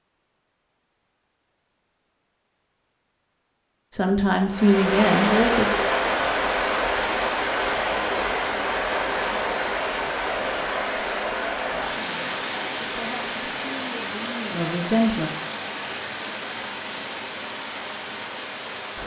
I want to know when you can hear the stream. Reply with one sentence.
The stream can be heard from 4.5 to 19.0 s.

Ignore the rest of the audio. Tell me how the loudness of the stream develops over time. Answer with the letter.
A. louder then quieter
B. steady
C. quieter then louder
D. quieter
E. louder
D.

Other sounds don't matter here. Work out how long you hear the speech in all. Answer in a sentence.
The speech can be heard for 5 seconds in total.